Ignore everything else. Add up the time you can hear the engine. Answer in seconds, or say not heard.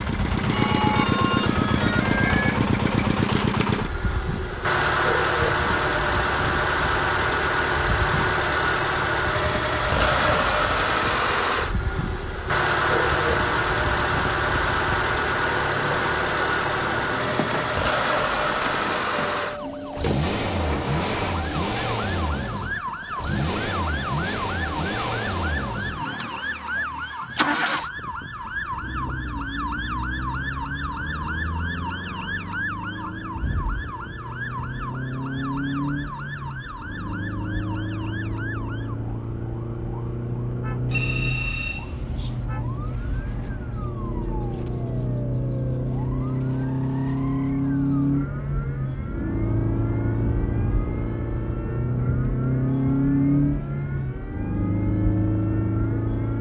56 s.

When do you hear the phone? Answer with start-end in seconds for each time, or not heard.
0.5-2.6, 40.9-42.5.